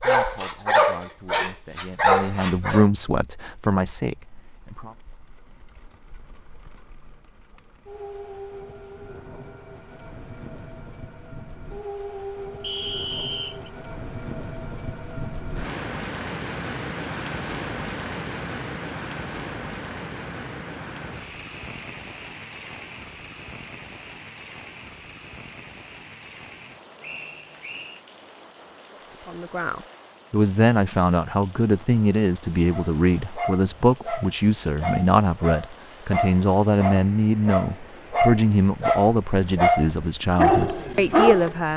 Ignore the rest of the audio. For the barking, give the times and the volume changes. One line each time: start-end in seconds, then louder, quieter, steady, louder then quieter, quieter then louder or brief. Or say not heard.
0.0-2.9 brief
32.7-41.5 louder.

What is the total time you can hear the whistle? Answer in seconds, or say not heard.
2 s.